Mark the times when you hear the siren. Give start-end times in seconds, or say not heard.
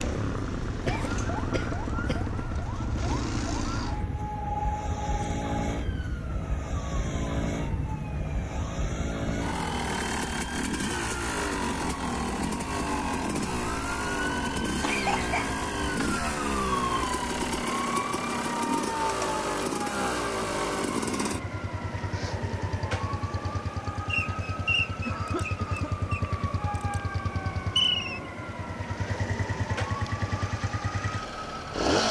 0.0-31.9.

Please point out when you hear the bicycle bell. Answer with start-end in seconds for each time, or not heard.
not heard.